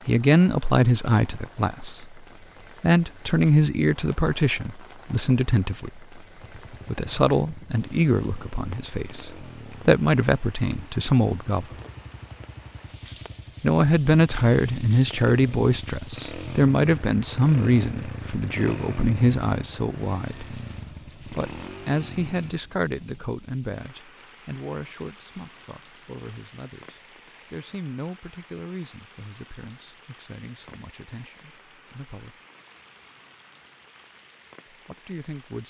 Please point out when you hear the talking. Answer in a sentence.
The talking can be heard from 0.1 to 2.2 s, from 2.8 to 6.0 s, from 6.8 to 11.8 s, from 13.6 to 20.4 s, from 21.3 to 32.4 s and from 34.7 to 35.6 s.